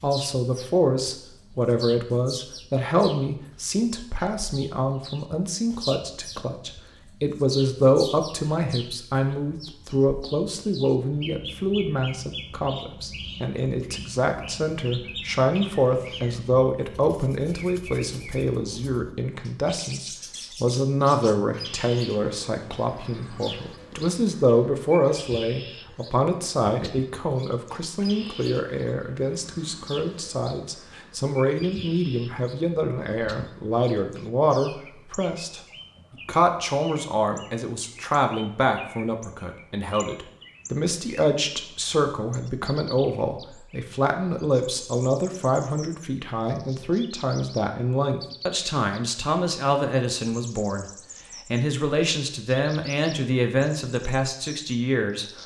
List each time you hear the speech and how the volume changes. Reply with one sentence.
The speech can be heard from 0.0 to 35.6 s, at a steady volume; and from 36.2 to 55.4 s, at a steady volume.